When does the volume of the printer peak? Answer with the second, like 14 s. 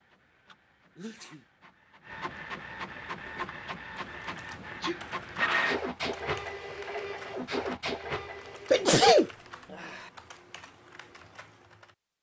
6 s.